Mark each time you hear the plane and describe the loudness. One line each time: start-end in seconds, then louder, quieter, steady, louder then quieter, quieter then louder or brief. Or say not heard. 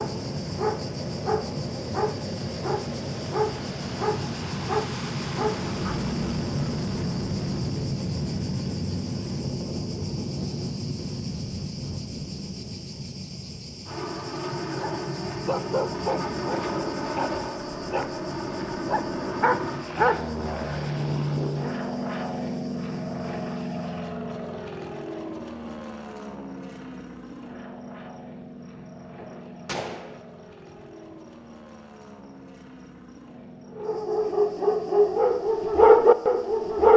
0.0-36.9 quieter.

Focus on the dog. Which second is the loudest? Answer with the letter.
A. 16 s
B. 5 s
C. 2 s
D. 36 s
D.